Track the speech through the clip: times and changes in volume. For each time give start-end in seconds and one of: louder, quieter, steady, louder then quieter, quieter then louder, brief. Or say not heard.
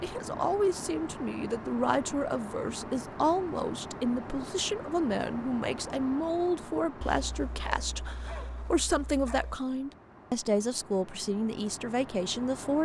0.0-12.8 steady.